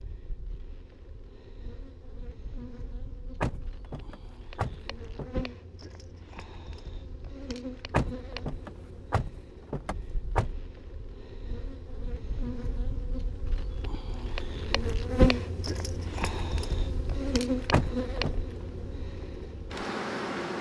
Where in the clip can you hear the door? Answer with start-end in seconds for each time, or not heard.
3.4-5.3, 7.9-10.6, 17.7-18.4.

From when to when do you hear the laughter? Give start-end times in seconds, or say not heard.
not heard.